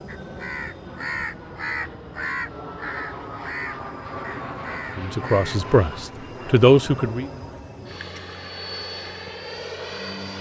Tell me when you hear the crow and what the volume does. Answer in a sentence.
You can hear the crow from 0.1 to 5.7 s, getting quieter.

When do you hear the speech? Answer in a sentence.
The speech can be heard from 5.0 to 7.3 s.